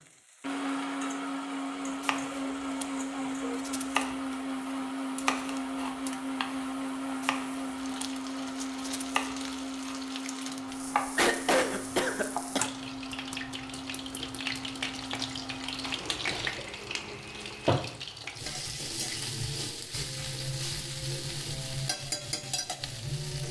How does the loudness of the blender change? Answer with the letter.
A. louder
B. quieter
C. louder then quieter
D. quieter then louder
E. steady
B.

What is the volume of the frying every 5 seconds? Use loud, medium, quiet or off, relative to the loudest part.
quiet, quiet, medium, loud, loud.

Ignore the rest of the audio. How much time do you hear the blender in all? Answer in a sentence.
You can hear the blender for 18 seconds altogether.